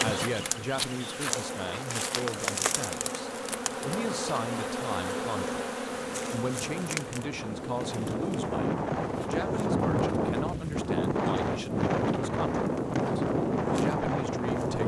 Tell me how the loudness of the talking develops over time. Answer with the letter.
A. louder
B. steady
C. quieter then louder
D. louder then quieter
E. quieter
B.